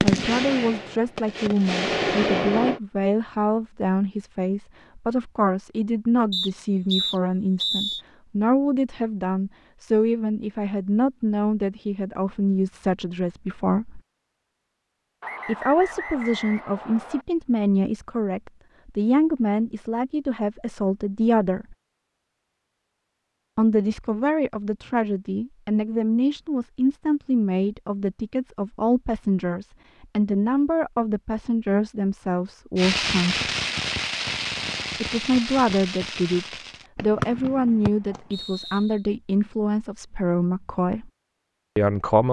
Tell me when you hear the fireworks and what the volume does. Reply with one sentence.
The fireworks can be heard briefly from 0.0 to 2.8 s; and from 32.8 to 38.5 s, getting quieter.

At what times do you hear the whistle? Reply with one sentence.
The whistle can be heard from 6.3 to 8.1 s, from 15.2 to 17.2 s and from 37.9 to 38.8 s.